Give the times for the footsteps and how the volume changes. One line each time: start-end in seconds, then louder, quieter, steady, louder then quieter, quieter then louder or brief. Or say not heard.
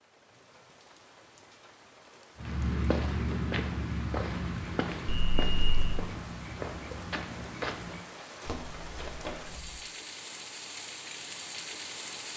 2.4-9.9 quieter.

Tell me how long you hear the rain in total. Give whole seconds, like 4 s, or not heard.
12 s.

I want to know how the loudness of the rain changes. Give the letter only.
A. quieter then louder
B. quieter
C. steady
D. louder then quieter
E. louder
E.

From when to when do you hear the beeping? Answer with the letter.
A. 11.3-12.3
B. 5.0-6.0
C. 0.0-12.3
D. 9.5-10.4
B.